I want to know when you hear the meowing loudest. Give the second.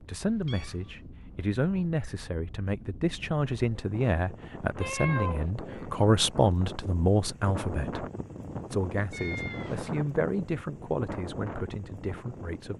5 s.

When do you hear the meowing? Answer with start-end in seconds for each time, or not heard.
0.2-1.1, 4.8-5.5, 9.1-10.1.